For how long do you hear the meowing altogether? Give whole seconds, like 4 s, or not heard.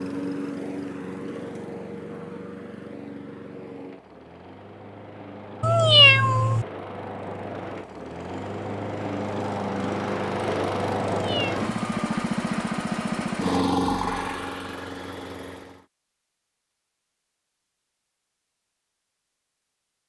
2 s.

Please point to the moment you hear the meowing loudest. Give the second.
6 s.